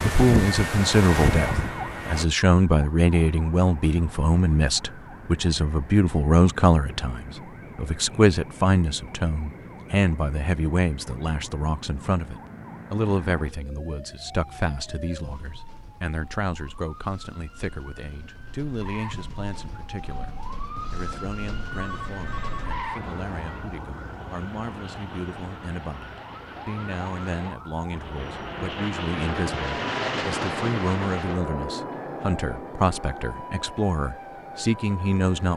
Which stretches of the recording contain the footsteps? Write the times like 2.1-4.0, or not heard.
not heard.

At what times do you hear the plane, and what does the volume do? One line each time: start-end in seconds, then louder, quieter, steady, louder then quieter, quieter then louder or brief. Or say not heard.
0.0-2.2 brief
21.8-35.5 louder then quieter.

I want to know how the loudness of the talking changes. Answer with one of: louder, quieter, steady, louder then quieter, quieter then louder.
quieter then louder.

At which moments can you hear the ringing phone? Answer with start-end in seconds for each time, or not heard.
21.7-22.8.